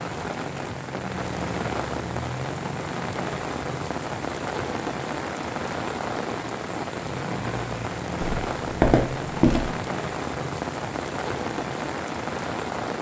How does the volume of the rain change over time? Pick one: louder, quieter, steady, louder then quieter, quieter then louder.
steady.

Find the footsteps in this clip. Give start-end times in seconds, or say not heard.
8.2-9.7.